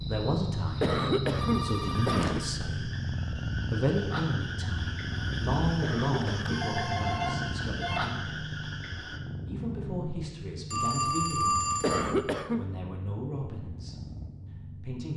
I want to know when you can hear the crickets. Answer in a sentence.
The crickets can be heard from 0.0 to 9.2 s.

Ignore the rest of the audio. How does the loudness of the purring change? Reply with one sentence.
The loudness of the purring goes down.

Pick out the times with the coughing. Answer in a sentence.
The coughing can be heard from 0.8 to 2.5 s, from 5.8 to 6.7 s and from 11.8 to 12.7 s.